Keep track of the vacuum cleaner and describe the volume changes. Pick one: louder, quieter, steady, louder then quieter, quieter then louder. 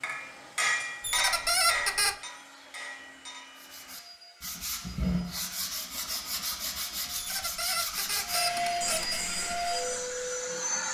louder.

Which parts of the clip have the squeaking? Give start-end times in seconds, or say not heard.
1.0-2.1, 7.2-9.2.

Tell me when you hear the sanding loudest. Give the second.
5 s.